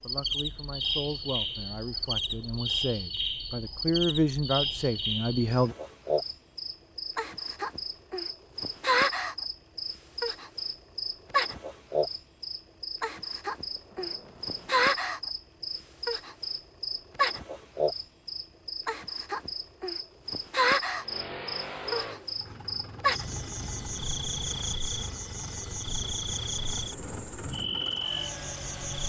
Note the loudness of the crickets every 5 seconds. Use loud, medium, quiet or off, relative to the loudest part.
loud, loud, loud, loud, loud, medium.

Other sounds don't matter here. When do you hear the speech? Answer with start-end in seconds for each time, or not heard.
0.0-5.8.